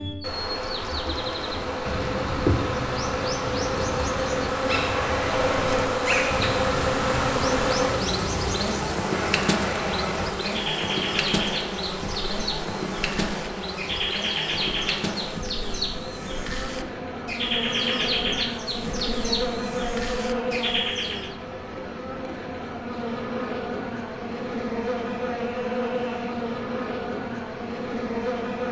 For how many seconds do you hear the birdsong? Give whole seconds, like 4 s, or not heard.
21 s.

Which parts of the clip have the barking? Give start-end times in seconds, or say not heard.
not heard.